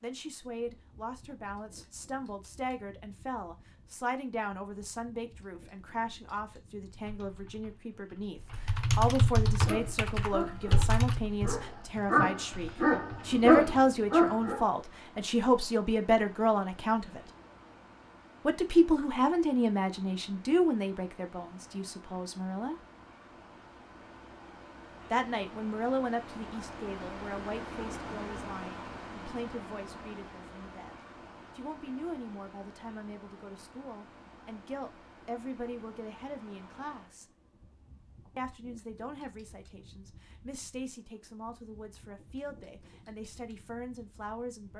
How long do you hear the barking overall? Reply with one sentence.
You can hear the barking for 5 seconds altogether.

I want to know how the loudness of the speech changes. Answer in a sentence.
The volume of the speech goes up, then down.